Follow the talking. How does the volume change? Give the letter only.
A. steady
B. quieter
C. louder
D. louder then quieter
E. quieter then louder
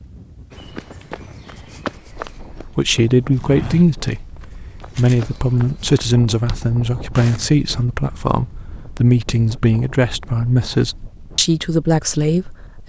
A.